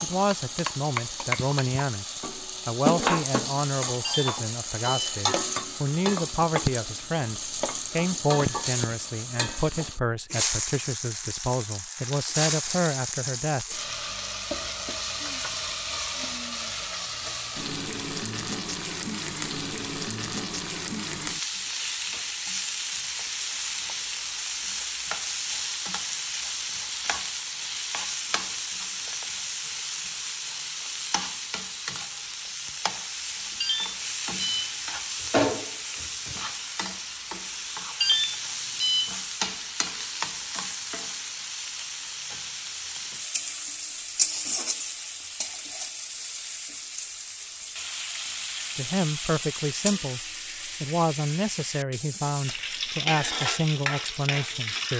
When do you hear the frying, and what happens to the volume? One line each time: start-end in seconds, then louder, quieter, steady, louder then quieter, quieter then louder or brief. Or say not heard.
0.0-54.9 steady.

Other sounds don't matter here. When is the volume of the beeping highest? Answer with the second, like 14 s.
38 s.